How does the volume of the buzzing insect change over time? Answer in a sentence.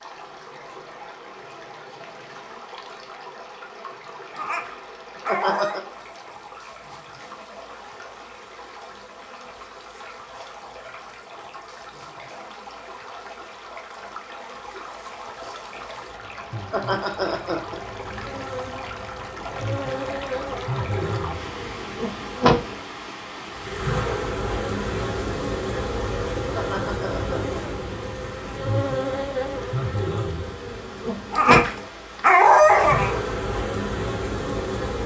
The volume of the buzzing insect goes up.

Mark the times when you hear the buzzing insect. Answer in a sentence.
The buzzing insect can be heard from 0.0 to 35.0 s.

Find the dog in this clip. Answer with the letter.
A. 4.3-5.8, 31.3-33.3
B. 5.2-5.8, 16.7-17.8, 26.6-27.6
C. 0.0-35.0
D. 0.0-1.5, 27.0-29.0
A.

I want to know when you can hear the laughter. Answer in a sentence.
You can hear the laughter from 5.2 to 5.8 s, from 16.7 to 17.8 s and from 26.6 to 27.6 s.